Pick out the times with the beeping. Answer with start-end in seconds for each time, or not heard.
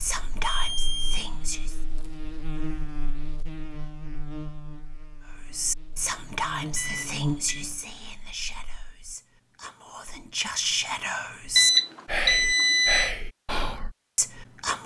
0.4-1.1, 6.8-7.7, 11.6-13.1.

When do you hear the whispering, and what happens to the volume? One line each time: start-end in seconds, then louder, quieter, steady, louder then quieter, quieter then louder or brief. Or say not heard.
0.0-1.8 brief
5.5-14.8 quieter then louder.